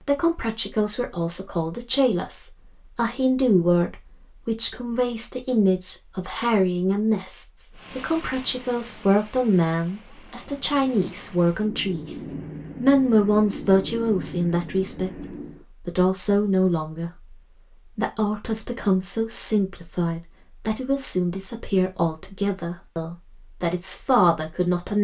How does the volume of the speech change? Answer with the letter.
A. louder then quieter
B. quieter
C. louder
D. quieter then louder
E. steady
E.